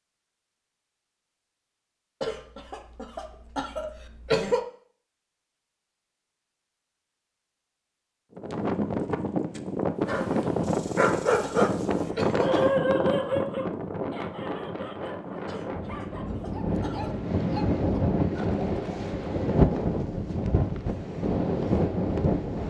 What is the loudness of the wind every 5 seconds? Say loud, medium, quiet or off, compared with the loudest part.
off, loud, loud, loud, loud.